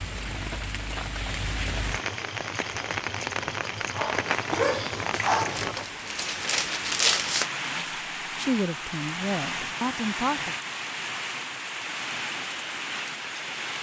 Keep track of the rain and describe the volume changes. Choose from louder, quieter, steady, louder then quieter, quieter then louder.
steady.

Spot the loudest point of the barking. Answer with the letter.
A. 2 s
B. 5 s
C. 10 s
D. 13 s
B.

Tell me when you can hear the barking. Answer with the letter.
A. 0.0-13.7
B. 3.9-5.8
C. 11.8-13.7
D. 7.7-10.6
B.